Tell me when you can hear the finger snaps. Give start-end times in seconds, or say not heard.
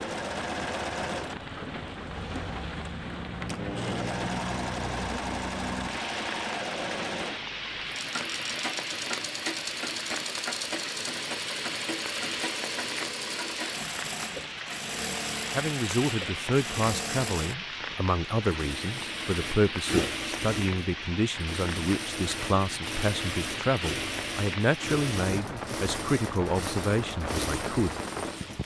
not heard.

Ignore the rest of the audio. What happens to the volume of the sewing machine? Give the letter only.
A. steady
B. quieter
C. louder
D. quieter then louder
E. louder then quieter
A.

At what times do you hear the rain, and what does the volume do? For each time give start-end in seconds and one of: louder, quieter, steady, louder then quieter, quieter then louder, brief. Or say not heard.
0.0-28.6 steady.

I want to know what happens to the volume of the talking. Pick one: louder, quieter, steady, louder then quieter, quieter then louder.
steady.